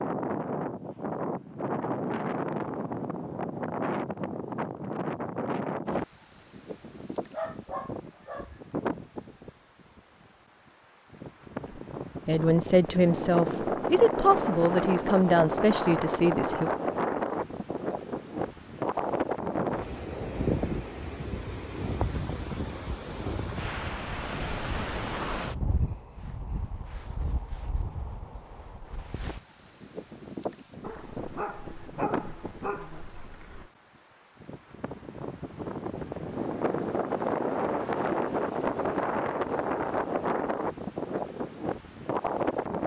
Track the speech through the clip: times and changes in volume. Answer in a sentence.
The speech can be heard from 12.2 to 16.7 s, at a steady volume.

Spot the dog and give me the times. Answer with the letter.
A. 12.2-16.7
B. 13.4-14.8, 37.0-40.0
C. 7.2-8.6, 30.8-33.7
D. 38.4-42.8
C.